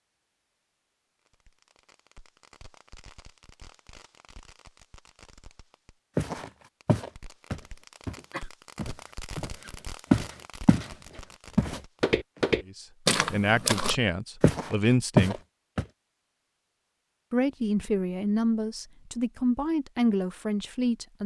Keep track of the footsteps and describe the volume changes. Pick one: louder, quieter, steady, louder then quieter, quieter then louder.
louder.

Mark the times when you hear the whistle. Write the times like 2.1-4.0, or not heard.
not heard.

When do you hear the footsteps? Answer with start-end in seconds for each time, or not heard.
6.2-10.9, 11.6-15.8.